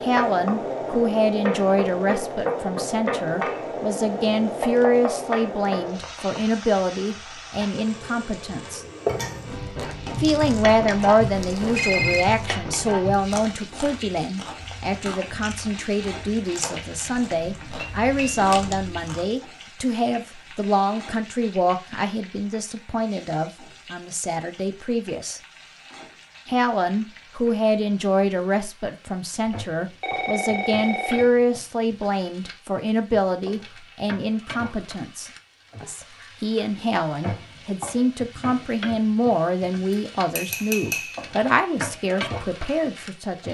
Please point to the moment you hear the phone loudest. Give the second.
12 s.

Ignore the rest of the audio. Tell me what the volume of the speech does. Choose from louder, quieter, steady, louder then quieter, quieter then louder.
steady.